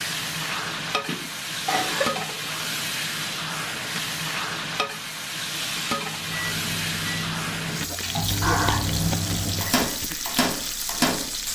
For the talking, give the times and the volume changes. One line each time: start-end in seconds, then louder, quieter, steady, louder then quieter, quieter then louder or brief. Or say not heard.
not heard.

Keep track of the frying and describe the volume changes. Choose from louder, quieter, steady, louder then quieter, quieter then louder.
steady.